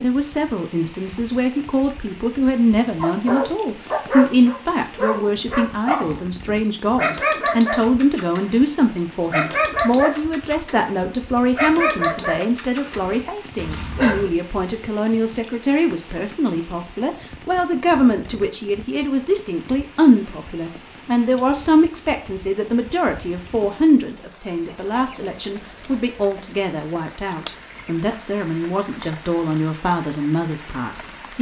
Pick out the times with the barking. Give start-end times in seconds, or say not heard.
3.0-6.2, 7.0-8.6, 9.3-10.9, 11.6-14.3.